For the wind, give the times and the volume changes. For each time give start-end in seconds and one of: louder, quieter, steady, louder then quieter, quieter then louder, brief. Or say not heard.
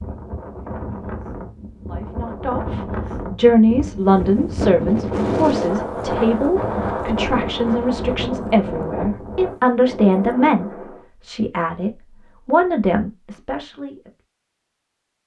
0.0-11.1 louder then quieter.